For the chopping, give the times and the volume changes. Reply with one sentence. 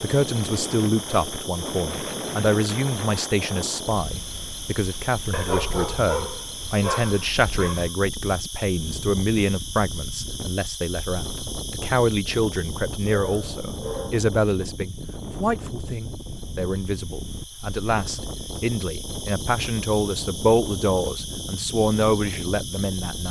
The chopping can't be heard in this clip.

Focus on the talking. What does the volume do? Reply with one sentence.
The loudness of the talking stays about the same.